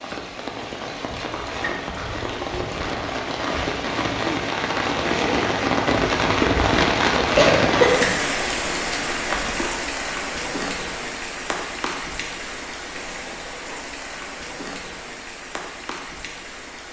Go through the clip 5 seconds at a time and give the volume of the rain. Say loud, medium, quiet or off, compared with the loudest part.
medium, loud, medium, quiet.